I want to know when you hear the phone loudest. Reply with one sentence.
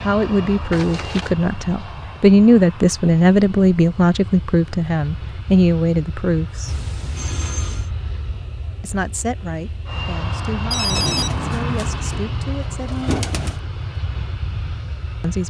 The volume of the phone peaks at 11 seconds.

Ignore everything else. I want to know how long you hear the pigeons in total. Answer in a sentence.
The pigeons can be heard for 3 seconds in total.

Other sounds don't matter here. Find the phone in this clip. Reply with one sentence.
The phone can be heard from 0.7 to 1.4 s, from 6.7 to 7.9 s and from 10.7 to 11.4 s.